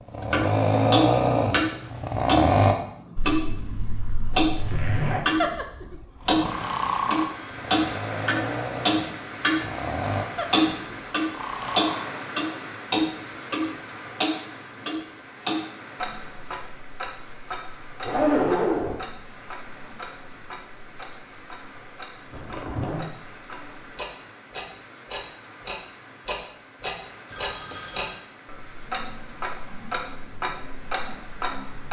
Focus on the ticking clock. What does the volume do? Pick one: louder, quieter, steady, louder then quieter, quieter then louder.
quieter then louder.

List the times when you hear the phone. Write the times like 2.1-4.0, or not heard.
6.3-8.4, 27.3-28.2.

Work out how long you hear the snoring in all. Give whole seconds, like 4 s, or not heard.
12 s.